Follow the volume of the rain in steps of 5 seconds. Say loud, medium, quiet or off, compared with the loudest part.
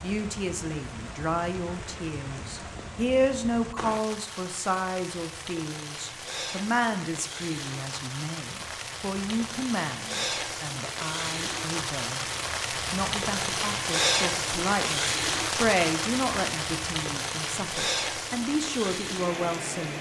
medium, medium, loud, loud.